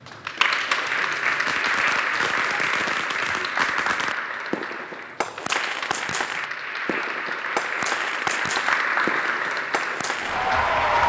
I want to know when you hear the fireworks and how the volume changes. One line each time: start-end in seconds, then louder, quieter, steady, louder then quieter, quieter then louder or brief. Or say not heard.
1.2-10.4 steady.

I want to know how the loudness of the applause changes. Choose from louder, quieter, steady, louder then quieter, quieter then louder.
quieter then louder.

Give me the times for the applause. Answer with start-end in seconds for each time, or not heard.
0.0-11.0.